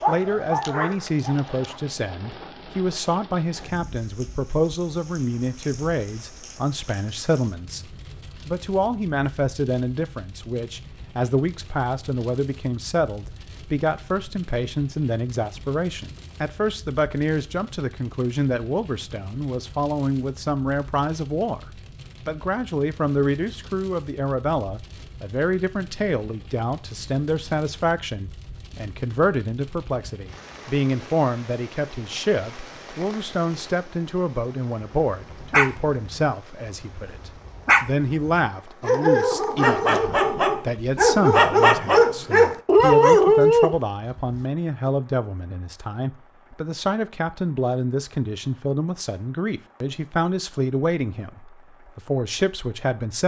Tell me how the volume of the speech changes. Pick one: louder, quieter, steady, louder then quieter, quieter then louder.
steady.